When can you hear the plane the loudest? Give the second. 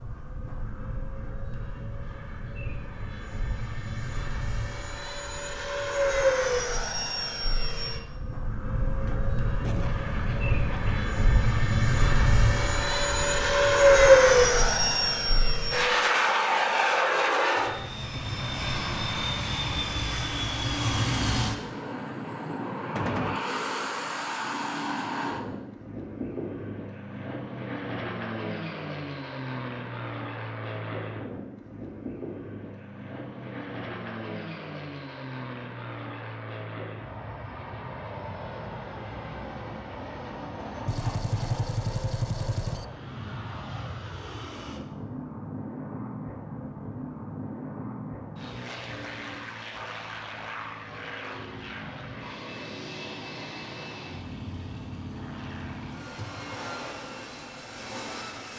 14 s.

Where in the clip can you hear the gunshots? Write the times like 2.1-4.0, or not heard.
9.1-11.1, 22.9-23.4, 40.9-42.9.